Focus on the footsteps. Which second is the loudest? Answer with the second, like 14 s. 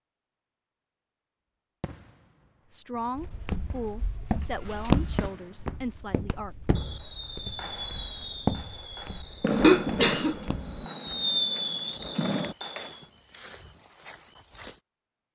5 s.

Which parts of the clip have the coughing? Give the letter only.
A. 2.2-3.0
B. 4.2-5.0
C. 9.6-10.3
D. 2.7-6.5
C.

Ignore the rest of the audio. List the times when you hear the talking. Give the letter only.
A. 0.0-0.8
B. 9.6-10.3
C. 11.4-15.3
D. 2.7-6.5
D.